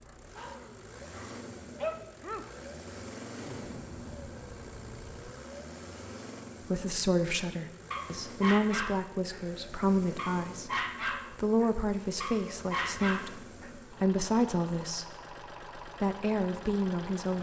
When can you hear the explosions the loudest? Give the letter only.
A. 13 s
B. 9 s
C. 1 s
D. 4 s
D.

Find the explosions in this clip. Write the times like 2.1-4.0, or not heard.
3.3-5.3.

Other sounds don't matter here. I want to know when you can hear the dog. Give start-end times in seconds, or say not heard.
0.0-2.5, 7.9-9.4, 10.2-13.7.